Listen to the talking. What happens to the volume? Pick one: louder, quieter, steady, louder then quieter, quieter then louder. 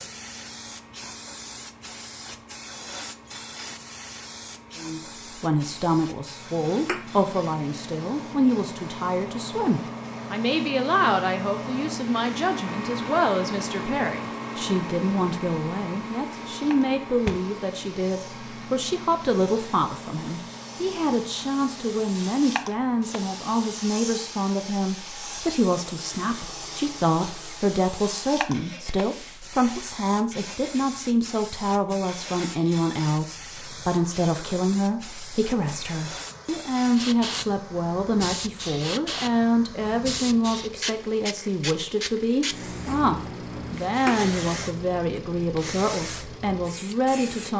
steady.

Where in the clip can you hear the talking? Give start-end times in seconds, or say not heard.
4.8-47.5.